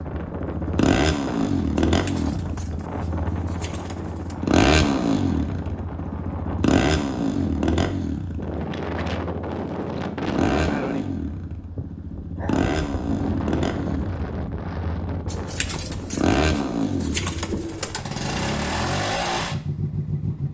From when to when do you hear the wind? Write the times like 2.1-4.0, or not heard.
0.0-16.2.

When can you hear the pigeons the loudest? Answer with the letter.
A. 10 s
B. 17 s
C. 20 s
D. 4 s
B.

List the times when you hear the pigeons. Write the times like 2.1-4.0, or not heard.
1.9-4.3, 15.2-18.1.